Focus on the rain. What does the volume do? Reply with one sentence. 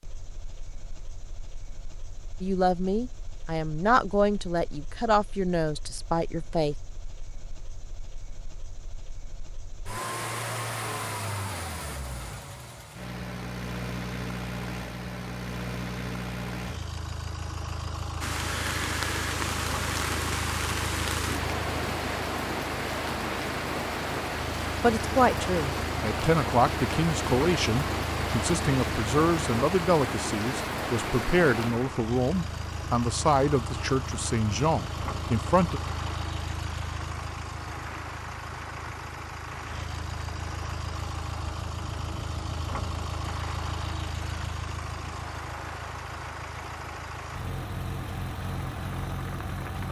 The volume of the rain goes down.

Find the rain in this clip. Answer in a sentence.
The rain can be heard from 18.2 to 49.8 s.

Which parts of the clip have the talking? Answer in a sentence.
The talking can be heard from 2.4 to 6.8 s and from 24.8 to 35.8 s.